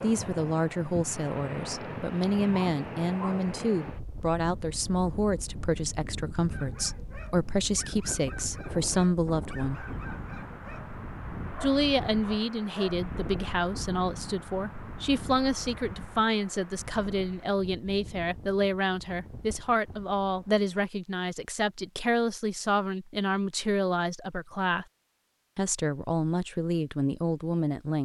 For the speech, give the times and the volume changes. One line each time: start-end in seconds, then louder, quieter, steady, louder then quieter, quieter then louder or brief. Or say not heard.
0.0-9.8 steady
11.6-24.9 steady
25.6-27.9 brief.